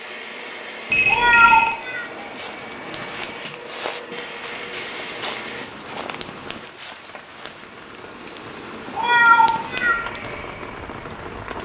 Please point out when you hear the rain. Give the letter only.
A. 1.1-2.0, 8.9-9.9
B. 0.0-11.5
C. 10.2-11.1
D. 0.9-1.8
B.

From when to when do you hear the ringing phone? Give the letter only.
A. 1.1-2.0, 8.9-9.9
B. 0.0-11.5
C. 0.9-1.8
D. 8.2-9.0
C.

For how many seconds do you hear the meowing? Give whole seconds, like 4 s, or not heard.
2 s.